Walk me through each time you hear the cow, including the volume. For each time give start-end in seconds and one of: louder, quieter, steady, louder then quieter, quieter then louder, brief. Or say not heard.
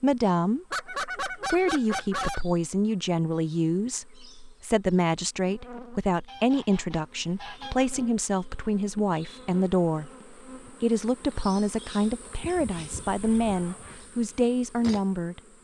not heard.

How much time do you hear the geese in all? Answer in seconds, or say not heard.
5 s.